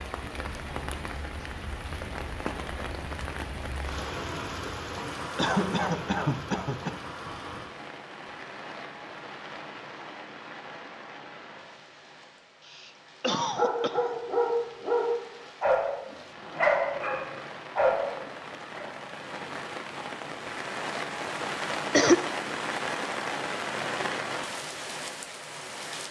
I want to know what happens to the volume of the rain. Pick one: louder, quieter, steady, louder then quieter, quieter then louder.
quieter then louder.